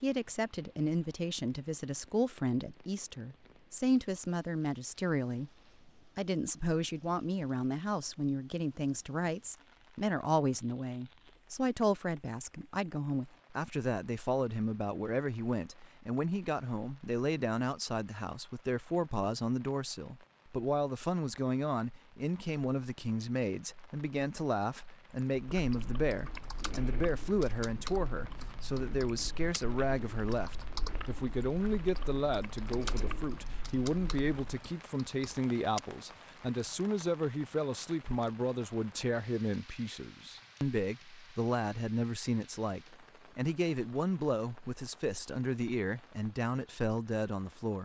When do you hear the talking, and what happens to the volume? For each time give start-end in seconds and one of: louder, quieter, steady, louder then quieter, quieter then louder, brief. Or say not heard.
0.0-47.8 steady.